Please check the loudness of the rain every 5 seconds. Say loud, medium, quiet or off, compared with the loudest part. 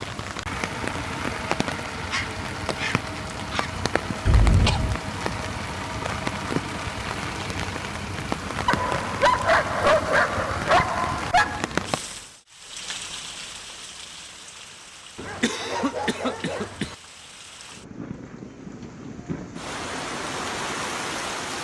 loud, loud, loud, medium, loud.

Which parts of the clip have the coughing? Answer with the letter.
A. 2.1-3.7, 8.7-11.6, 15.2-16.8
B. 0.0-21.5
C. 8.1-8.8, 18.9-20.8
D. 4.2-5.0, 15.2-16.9
D.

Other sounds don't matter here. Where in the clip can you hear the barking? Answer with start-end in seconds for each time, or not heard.
2.1-3.7, 8.7-11.6, 15.2-16.8.